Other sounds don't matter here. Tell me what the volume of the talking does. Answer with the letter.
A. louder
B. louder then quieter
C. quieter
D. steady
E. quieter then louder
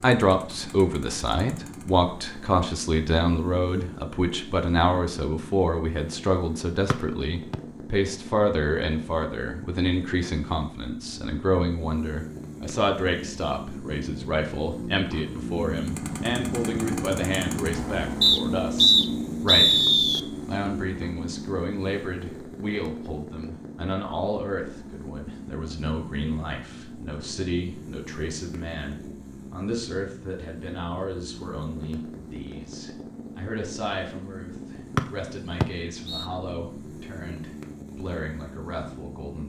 C.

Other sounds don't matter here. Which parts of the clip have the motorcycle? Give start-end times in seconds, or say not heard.
0.0-39.4.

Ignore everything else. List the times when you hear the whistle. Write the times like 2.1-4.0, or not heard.
6.9-7.5, 18.2-20.2, 35.6-36.2.